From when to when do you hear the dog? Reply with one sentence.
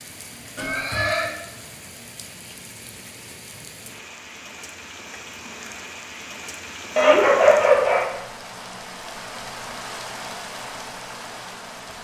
The dog can be heard from 7.0 to 8.1 s.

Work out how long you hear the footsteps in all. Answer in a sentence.
The footsteps can't be heard in this clip.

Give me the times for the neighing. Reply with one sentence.
You can hear the neighing from 0.6 to 1.3 s.